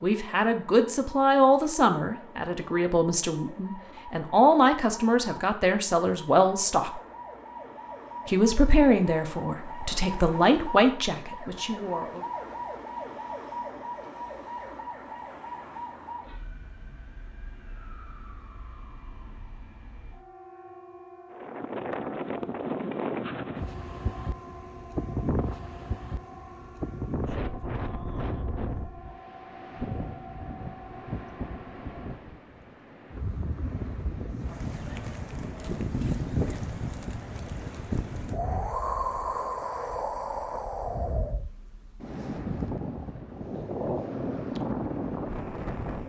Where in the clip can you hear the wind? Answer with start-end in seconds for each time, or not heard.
21.3-46.0.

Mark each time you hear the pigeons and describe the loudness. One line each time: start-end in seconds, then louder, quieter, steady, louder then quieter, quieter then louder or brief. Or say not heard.
not heard.